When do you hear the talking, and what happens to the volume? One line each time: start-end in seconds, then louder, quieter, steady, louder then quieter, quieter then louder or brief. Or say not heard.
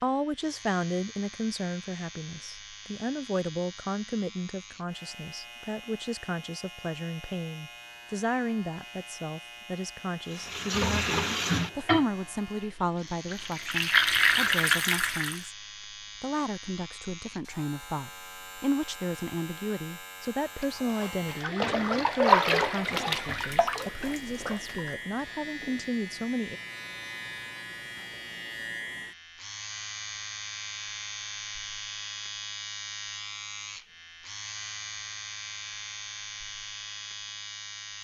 0.0-26.6 steady.